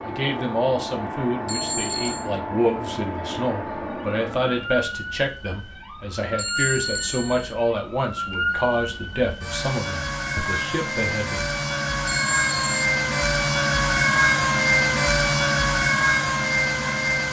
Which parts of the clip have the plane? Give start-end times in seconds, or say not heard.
0.0-4.8.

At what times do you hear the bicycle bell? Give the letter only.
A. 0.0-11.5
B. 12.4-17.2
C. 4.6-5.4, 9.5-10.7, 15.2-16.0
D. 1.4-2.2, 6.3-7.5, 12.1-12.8
D.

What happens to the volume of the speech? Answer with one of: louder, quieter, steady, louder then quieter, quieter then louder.
steady.